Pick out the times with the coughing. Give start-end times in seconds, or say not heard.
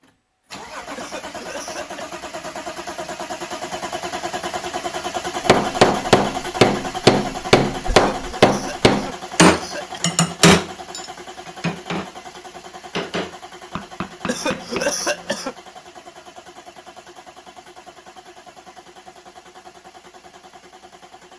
0.9-2.0, 7.8-10.0, 14.2-15.6.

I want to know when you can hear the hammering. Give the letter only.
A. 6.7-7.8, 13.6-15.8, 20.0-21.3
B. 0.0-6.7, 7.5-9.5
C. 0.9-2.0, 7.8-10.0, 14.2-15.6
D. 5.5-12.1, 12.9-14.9
D.